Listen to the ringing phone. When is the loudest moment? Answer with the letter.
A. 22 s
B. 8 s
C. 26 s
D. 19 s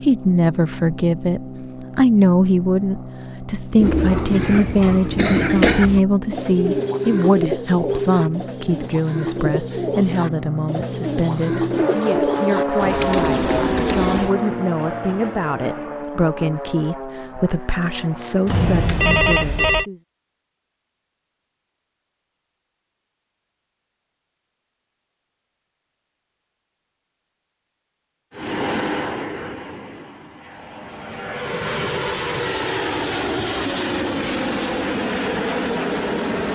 D.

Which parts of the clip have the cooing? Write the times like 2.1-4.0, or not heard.
3.8-14.3.